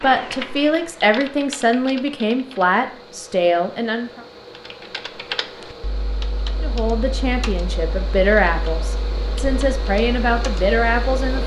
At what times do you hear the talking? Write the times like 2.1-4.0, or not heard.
0.0-4.2, 6.6-11.4.